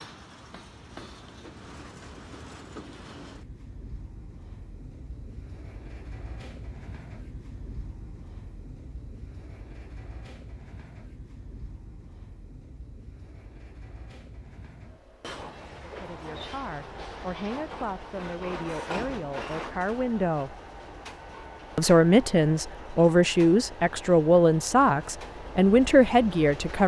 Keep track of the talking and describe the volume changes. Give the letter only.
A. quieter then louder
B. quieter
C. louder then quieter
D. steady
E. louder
E.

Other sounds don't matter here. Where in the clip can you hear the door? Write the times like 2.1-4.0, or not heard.
not heard.